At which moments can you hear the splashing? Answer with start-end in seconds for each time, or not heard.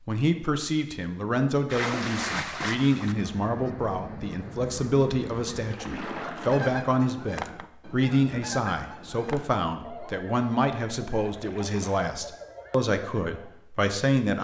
1.6-3.2, 5.7-6.7, 11.3-12.0.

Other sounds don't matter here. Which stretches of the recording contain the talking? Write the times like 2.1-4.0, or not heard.
0.1-14.3.